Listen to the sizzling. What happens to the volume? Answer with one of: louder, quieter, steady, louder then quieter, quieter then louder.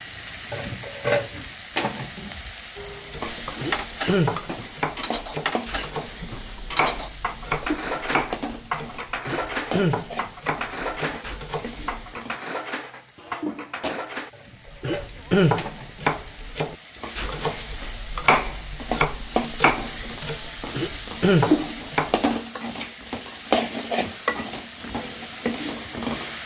quieter then louder.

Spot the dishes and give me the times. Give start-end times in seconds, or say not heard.
2.8-14.3.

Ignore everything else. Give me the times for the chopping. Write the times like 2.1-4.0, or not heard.
3.1-12.1, 14.7-22.2.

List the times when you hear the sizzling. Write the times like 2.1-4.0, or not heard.
0.0-26.4.